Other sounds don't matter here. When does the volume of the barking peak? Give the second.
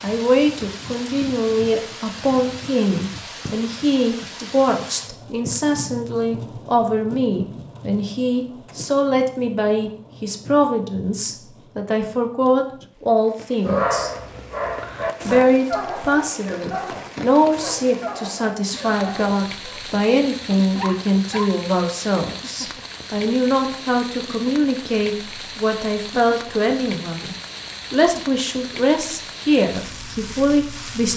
14 s.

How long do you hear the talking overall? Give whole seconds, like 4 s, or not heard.
29 s.